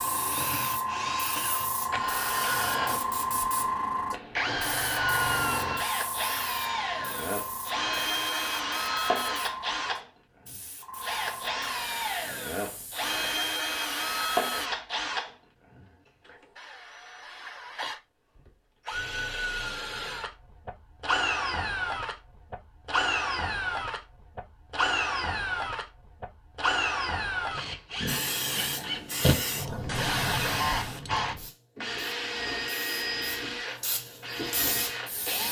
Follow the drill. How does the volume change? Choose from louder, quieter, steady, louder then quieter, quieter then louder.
steady.